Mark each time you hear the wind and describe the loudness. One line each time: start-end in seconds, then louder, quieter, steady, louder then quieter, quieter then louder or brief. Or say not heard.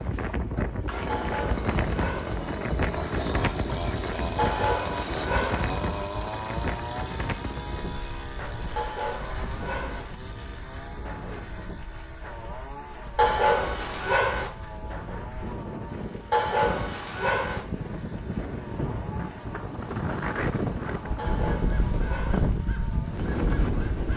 0.0-24.1 quieter then louder.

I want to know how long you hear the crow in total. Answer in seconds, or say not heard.
3 s.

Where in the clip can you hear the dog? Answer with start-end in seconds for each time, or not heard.
1.1-2.4, 4.3-5.7, 8.8-10.1, 13.2-14.5, 16.3-17.6, 21.1-22.5.